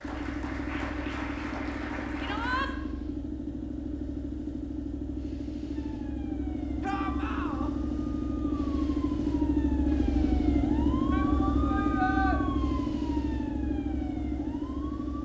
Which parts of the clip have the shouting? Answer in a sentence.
The shouting can be heard from 2.2 to 2.7 s, from 6.8 to 7.7 s and from 11.1 to 12.4 s.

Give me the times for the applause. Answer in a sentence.
The applause can be heard from 0.0 to 2.6 s.